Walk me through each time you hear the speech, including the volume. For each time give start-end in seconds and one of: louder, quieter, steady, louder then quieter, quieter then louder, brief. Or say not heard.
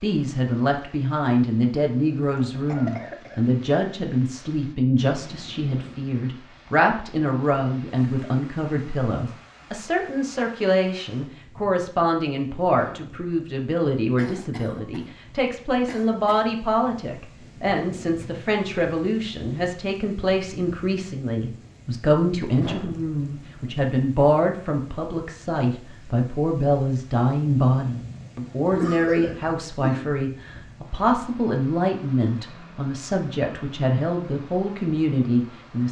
0.0-35.8 steady.